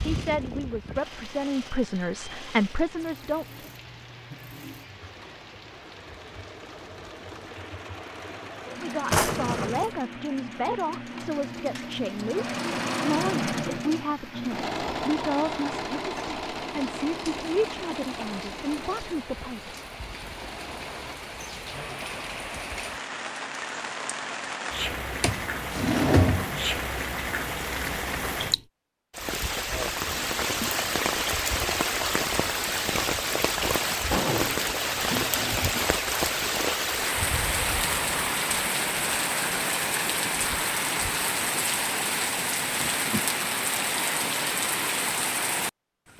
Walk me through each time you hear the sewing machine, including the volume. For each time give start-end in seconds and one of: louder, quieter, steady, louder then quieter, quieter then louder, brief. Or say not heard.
0.0-21.2 louder then quieter.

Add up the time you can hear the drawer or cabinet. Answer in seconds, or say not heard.
4 s.